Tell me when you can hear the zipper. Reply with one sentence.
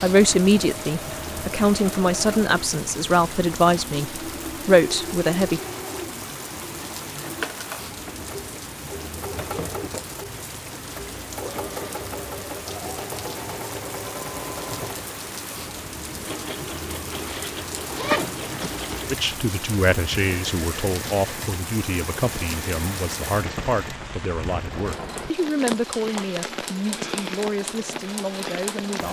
You can hear the zipper from 17.1 to 19.1 s.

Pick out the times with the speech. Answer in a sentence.
The speech can be heard from 0.0 to 5.6 s and from 19.1 to 29.0 s.